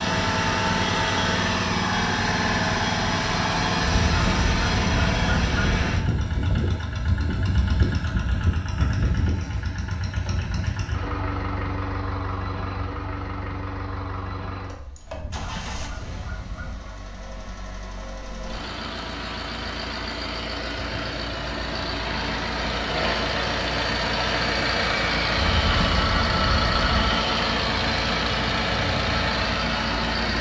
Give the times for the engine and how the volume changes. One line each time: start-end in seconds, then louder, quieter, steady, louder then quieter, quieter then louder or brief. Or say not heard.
0.0-30.3 quieter then louder.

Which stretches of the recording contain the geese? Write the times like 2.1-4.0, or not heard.
4.0-5.8, 15.1-16.9, 25.4-27.1.